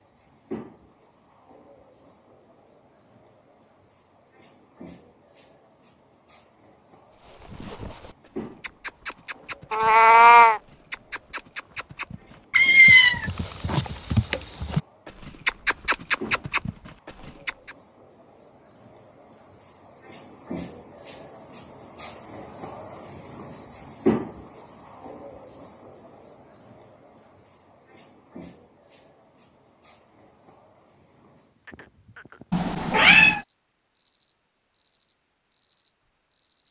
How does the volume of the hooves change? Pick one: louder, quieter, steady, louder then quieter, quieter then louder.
louder.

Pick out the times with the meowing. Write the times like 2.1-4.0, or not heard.
9.7-10.6, 12.5-13.8, 32.5-33.4.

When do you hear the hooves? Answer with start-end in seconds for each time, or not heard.
7.2-17.8.